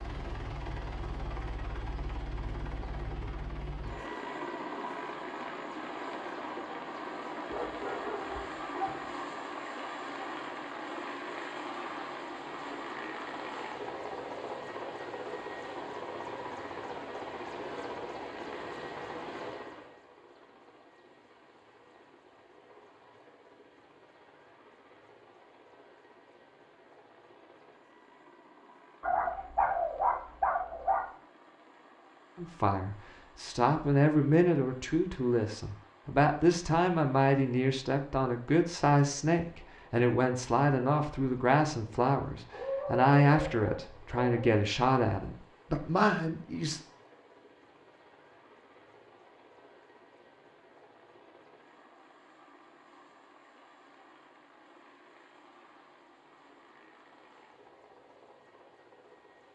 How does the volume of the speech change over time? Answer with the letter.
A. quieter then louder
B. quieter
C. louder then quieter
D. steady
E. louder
D.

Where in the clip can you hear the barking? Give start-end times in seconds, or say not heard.
7.5-9.1, 29.0-31.1, 42.5-44.5.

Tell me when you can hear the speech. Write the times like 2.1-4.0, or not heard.
32.4-46.8.